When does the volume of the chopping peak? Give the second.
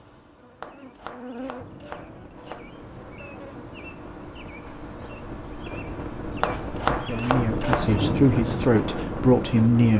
7 s.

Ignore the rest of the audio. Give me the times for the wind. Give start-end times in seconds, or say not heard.
1.6-9.9.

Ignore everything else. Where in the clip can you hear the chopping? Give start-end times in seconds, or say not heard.
0.6-2.6, 6.4-8.0.